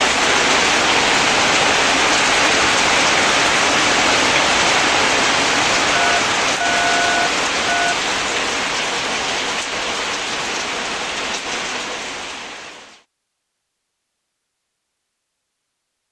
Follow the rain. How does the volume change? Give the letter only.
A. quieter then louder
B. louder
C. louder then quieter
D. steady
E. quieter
E.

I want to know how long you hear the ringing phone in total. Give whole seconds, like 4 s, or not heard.
2 s.